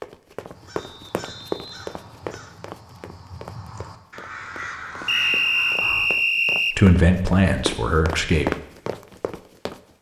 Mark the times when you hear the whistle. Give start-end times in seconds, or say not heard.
0.8-2.5, 5.0-6.8.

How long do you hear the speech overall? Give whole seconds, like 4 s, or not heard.
2 s.